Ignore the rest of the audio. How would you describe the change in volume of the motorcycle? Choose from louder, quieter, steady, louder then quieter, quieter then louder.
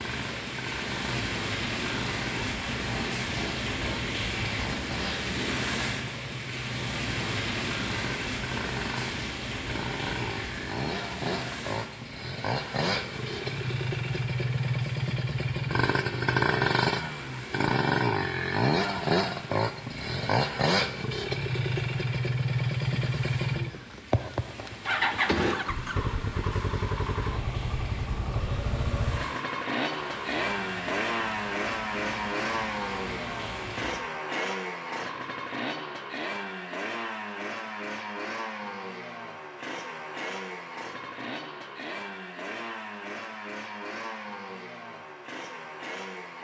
louder then quieter.